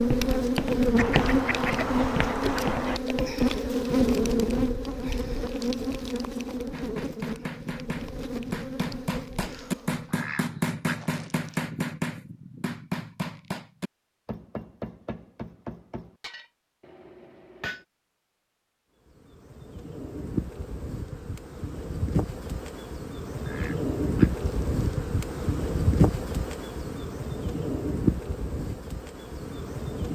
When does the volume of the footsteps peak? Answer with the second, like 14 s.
1 s.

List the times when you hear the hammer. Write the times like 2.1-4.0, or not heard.
6.7-17.9.